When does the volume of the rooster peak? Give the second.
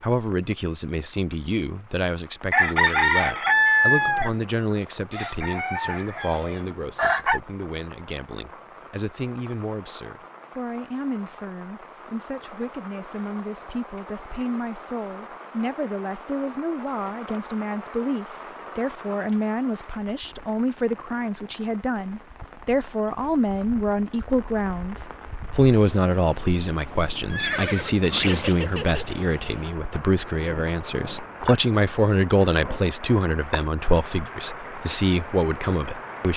4 s.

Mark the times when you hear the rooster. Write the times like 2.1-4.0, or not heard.
2.5-4.3, 5.1-7.4.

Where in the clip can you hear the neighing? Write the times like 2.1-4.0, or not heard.
27.3-29.1.